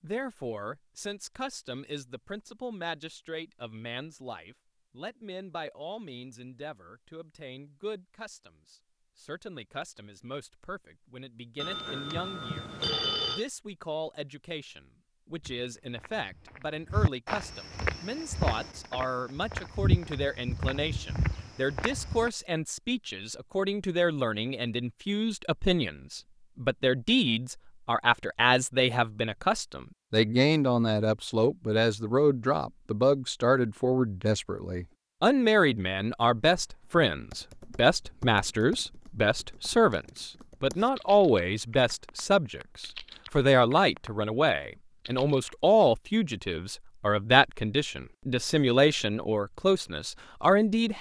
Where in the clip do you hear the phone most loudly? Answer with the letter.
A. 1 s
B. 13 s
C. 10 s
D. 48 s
B.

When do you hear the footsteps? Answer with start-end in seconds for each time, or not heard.
15.4-22.3.